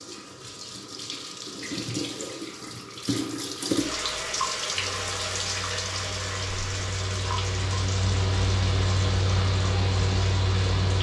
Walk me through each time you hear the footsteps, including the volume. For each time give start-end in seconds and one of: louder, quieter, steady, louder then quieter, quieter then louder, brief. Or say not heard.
not heard.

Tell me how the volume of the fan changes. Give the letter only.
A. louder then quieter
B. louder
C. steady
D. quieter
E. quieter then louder
B.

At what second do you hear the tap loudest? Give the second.
4 s.